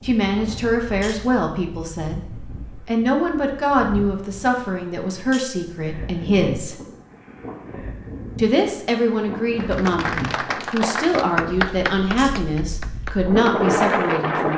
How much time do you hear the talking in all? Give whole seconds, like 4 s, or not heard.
13 s.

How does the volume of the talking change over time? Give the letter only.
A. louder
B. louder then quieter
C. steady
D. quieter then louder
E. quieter
C.